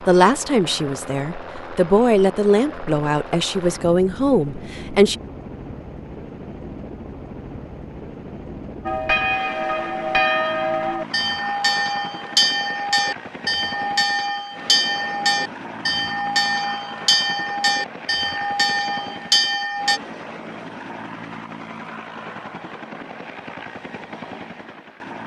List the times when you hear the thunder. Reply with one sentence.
The thunder can't be heard in this clip.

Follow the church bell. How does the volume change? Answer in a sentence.
The loudness of the church bell stays about the same.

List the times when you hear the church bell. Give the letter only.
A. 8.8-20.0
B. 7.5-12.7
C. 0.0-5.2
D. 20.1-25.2
A.